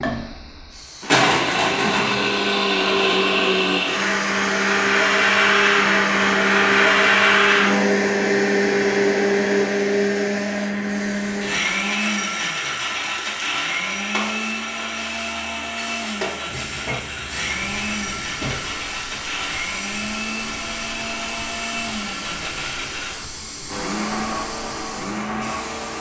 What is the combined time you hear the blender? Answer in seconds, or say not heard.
26 s.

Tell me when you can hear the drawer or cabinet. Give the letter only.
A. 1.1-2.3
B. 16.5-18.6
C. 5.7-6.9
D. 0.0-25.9
B.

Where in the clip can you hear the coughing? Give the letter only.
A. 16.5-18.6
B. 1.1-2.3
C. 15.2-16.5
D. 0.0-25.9
B.